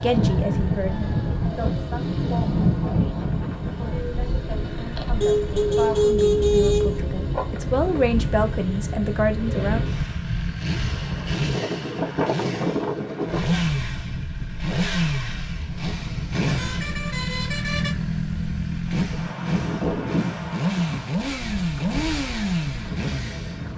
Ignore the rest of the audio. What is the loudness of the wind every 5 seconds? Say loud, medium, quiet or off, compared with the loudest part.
loud, medium, loud, medium, medium.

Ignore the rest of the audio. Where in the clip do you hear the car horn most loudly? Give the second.
6 s.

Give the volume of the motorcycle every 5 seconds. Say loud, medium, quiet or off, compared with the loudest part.
medium, medium, loud, loud, loud.